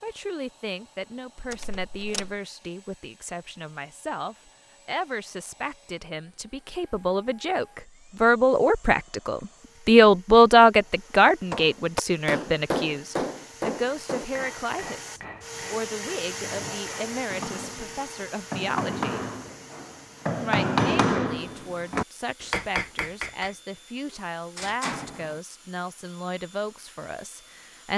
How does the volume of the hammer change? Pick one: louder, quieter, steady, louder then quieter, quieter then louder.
quieter then louder.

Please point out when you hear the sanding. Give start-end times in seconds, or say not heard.
not heard.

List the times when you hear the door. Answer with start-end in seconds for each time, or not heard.
1.5-2.4, 24.1-25.4.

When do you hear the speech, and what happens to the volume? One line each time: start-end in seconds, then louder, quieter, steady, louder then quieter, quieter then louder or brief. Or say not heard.
0.0-19.2 louder then quieter
20.4-27.9 steady.